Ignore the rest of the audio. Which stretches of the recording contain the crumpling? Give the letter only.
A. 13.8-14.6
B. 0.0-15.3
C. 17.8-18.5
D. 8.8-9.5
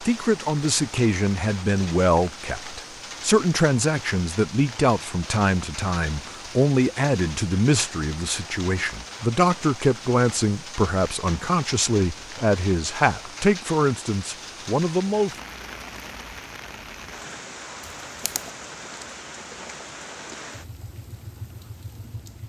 C.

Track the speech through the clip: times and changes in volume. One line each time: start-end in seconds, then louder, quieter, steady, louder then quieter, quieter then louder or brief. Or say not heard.
0.0-15.3 steady.